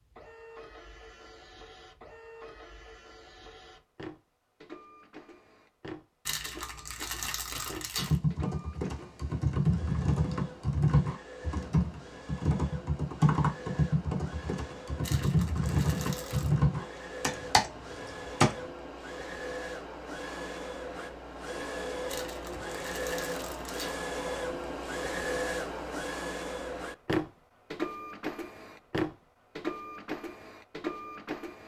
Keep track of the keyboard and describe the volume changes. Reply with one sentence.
The loudness of the keyboard stays about the same.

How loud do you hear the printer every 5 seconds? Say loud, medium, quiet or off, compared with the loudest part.
quiet, quiet, quiet, medium, loud, loud, medium.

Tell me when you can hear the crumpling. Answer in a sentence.
You can hear the crumpling from 6.2 to 8.2 s, from 15.0 to 16.6 s and from 22.1 to 24.0 s.